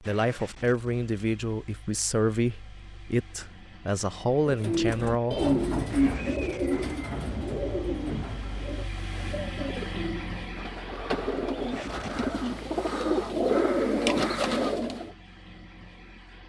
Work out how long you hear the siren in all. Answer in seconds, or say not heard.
not heard.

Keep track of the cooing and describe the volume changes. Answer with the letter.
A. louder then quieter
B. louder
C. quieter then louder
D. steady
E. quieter
C.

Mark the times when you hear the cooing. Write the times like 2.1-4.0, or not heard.
4.5-15.1.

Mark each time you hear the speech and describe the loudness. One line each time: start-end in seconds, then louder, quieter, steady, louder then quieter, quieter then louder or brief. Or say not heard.
0.0-5.4 steady.